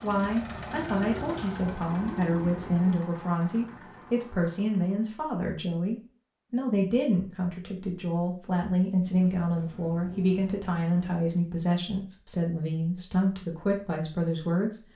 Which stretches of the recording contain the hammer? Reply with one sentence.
You can't hear the hammer here.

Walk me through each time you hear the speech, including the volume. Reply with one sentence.
You can hear the speech from 0.0 to 14.8 s, at a steady volume.